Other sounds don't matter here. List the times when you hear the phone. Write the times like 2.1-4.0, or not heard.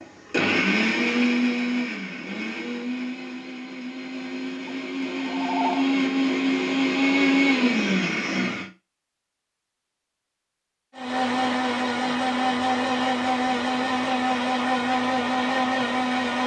4.7-5.8.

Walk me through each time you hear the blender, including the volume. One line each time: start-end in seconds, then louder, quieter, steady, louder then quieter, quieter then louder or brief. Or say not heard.
0.0-8.7 quieter then louder
10.9-16.4 steady.